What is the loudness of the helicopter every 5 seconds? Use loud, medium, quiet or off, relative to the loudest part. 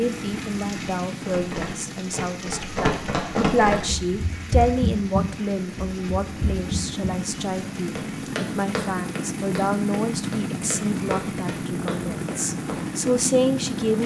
medium, loud, loud.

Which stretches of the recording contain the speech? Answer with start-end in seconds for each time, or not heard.
0.0-14.0.